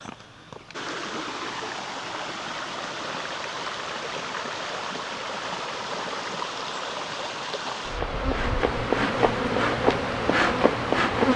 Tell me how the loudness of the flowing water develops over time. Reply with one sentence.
The loudness of the flowing water stays about the same.